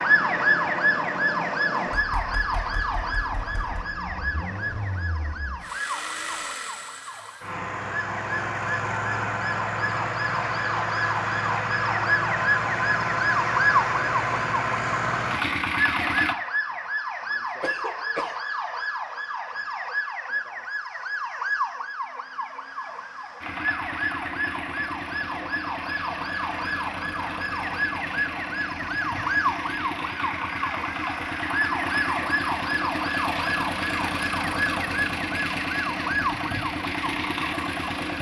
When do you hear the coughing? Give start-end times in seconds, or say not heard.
17.6-18.4.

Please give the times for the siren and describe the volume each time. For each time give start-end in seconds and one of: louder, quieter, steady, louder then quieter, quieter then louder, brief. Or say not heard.
0.0-38.1 steady.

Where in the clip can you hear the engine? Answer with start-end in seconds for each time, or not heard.
0.0-16.4, 23.4-38.1.